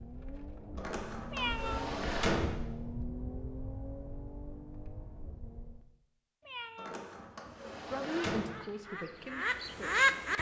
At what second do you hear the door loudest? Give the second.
2 s.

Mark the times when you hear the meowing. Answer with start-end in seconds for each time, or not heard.
1.3-2.0, 6.4-7.1.